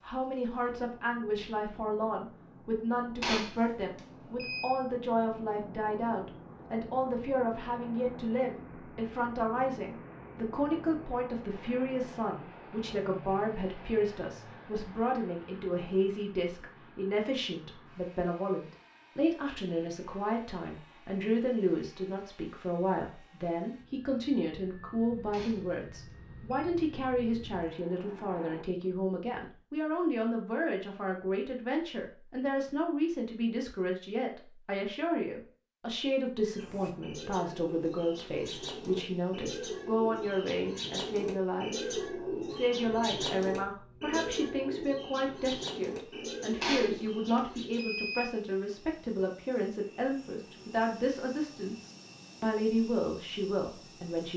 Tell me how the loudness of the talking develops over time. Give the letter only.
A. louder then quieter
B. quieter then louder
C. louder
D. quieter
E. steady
E.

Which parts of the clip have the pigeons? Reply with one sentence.
You can hear the pigeons from 36.4 to 48.0 s.